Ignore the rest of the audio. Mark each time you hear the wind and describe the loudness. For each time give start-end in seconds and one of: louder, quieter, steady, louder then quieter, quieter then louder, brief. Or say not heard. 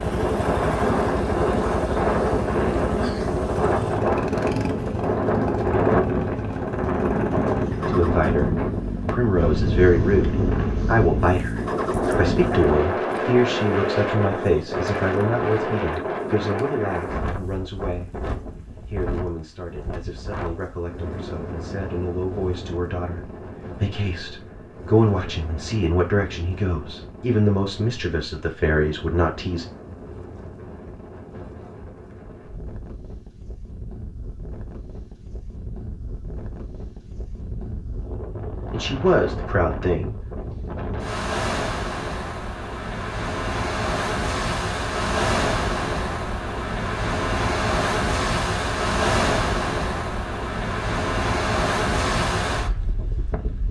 0.0-53.6 quieter then louder.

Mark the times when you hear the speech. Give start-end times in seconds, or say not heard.
7.8-18.2, 18.9-29.6, 38.5-40.2.